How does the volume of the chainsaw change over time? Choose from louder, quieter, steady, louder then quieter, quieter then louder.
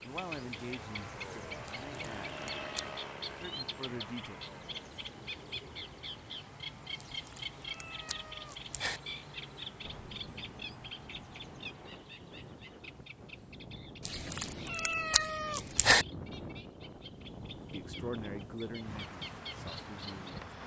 quieter.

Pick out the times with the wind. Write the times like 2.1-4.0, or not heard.
9.8-20.6.